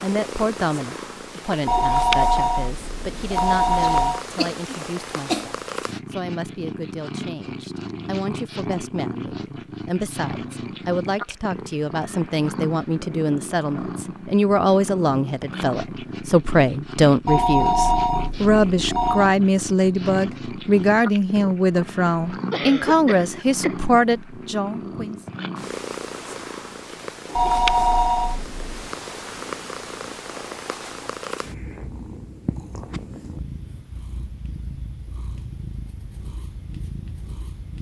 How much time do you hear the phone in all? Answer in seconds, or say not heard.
6 s.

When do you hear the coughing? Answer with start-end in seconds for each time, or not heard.
3.8-5.5, 22.5-23.9.